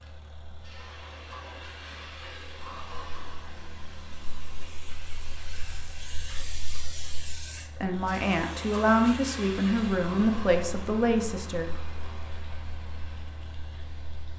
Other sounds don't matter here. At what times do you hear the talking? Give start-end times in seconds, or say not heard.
7.8-11.7.